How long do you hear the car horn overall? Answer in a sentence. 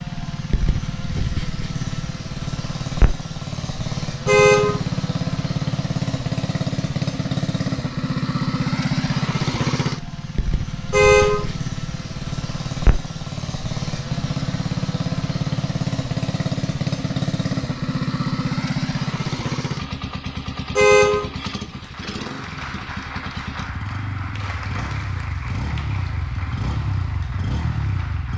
The car horn can be heard for 2 seconds in total.